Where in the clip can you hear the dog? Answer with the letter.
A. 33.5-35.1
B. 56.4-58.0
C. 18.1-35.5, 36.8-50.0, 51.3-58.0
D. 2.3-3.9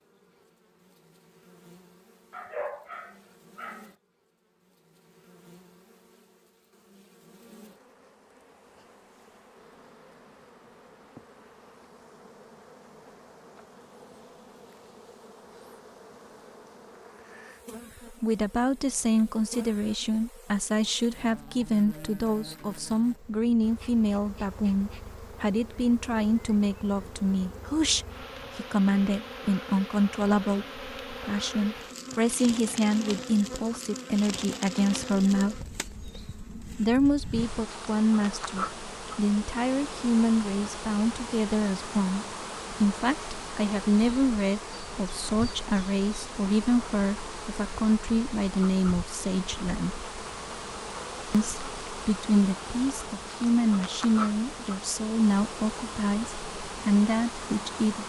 D.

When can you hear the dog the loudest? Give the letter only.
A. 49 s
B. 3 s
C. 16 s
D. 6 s
B.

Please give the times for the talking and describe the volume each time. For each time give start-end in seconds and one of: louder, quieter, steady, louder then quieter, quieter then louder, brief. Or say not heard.
18.1-35.5 steady
36.8-50.0 steady
51.3-58.0 steady.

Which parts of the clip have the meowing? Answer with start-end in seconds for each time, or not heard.
not heard.